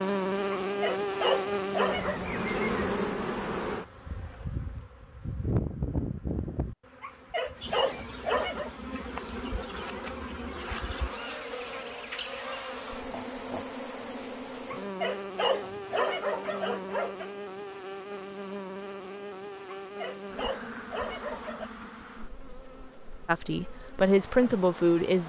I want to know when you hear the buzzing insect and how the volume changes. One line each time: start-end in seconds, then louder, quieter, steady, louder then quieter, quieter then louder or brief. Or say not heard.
0.0-25.2 quieter.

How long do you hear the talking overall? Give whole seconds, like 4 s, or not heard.
2 s.